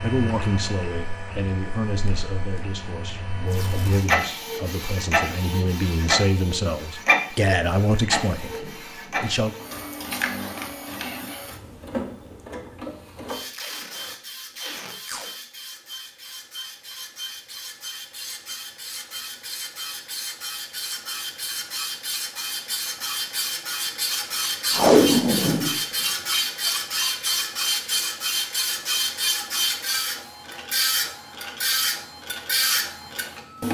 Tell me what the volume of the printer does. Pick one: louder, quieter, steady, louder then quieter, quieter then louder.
quieter then louder.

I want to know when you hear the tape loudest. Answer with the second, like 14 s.
25 s.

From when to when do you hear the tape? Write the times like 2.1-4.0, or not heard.
3.5-4.1, 13.5-15.3, 24.7-25.8.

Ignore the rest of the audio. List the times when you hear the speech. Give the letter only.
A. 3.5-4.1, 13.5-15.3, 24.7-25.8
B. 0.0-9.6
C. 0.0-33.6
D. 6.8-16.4
B.